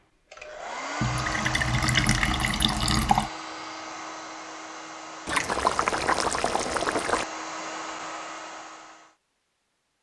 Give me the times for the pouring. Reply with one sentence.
The pouring can be heard from 1.0 to 3.3 s and from 5.2 to 7.2 s.